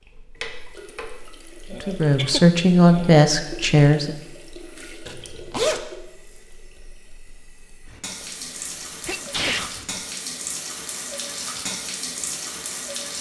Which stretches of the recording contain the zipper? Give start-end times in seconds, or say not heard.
5.0-5.8.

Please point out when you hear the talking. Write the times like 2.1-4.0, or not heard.
1.7-4.2.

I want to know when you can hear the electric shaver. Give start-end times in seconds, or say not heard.
not heard.